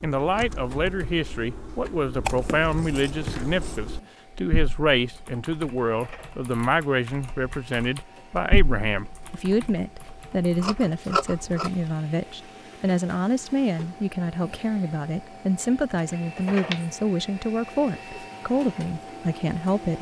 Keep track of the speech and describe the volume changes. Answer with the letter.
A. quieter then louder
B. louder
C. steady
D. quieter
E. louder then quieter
C.